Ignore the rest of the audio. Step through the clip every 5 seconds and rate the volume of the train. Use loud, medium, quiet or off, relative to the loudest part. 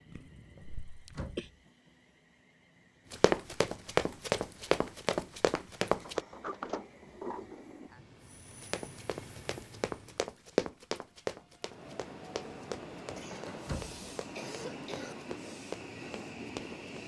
quiet, medium, loud, loud.